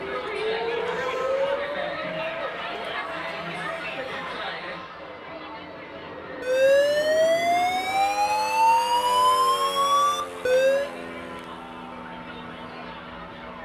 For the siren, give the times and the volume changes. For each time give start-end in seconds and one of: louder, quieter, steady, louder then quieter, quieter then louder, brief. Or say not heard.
0.0-4.2 quieter
6.4-10.9 steady.